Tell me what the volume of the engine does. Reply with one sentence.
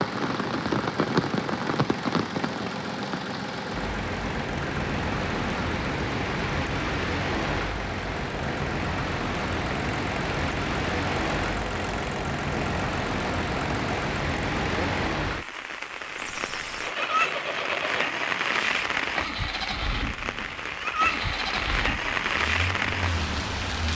The loudness of the engine stays about the same.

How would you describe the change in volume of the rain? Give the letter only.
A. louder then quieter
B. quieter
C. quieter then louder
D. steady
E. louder
D.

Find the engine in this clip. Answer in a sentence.
You can hear the engine from 0.0 to 23.8 s.